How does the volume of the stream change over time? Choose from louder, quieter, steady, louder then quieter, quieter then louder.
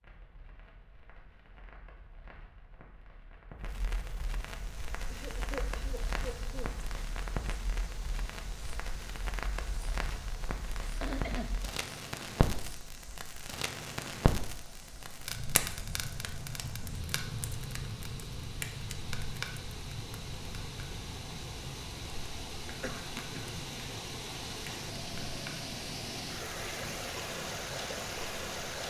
louder.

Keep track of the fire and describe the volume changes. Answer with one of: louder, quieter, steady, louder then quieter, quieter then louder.
louder then quieter.